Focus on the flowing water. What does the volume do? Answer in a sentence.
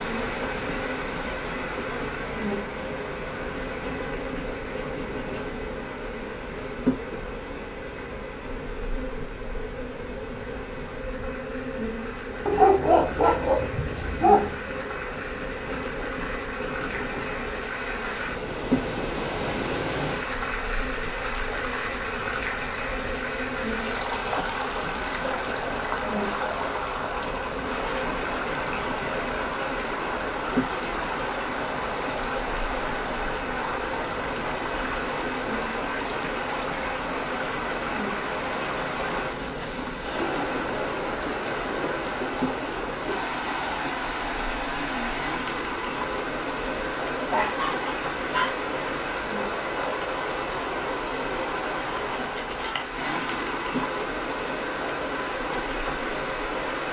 The loudness of the flowing water goes up.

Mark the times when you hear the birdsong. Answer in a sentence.
The birdsong can't be heard in this clip.